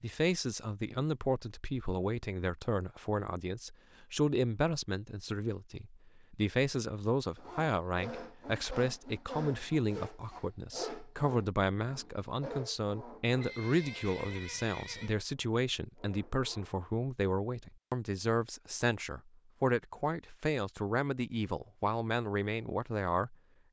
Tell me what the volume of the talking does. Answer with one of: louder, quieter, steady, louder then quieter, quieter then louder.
steady.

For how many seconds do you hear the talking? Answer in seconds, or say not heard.
23 s.